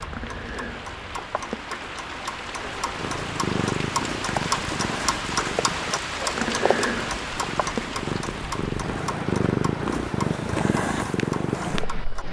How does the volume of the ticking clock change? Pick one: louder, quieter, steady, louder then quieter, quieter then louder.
louder then quieter.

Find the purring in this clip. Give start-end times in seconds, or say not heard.
3.0-12.2.